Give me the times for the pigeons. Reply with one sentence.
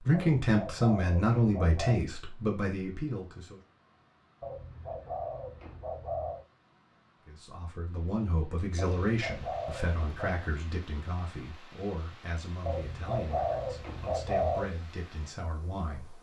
You can hear the pigeons from 0.1 to 2.0 s, from 4.4 to 6.5 s, from 8.8 to 10.5 s and from 12.7 to 14.7 s.